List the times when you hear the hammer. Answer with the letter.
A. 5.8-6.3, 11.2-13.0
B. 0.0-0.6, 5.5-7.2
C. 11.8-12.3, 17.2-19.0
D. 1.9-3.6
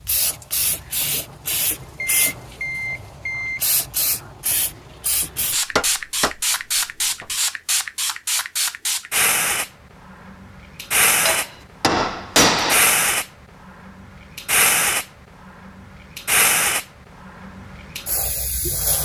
A.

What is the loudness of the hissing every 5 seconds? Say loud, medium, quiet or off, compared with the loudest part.
medium, loud, loud, loud.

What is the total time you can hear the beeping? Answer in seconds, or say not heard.
2 s.